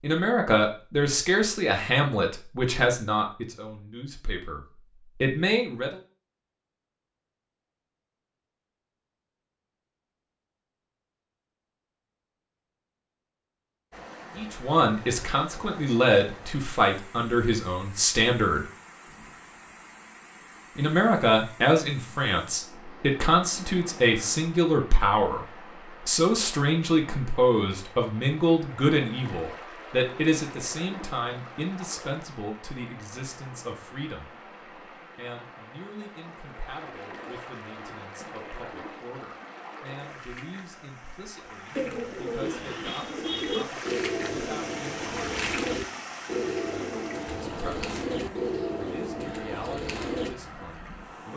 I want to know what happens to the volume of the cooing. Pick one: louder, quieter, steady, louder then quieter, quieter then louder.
steady.